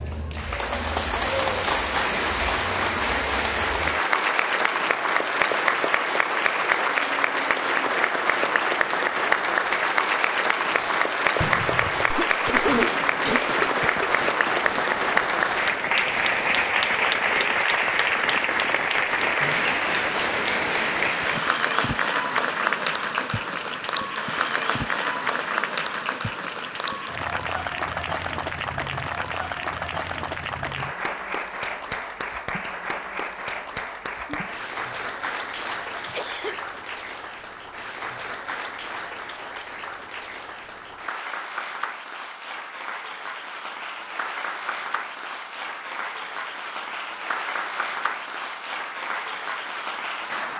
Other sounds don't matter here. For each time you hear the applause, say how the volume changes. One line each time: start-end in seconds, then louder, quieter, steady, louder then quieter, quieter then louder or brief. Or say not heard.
0.0-50.5 quieter.